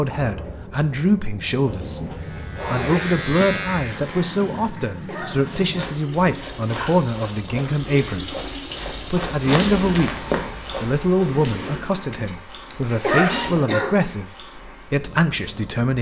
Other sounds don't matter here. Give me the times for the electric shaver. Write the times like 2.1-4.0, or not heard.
2.1-4.5.